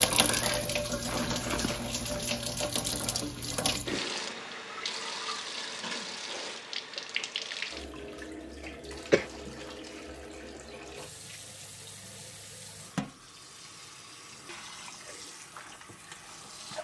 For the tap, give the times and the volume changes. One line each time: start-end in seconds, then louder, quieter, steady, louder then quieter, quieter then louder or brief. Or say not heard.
0.0-16.7 quieter.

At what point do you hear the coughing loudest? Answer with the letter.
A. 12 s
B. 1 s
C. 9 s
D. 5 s
C.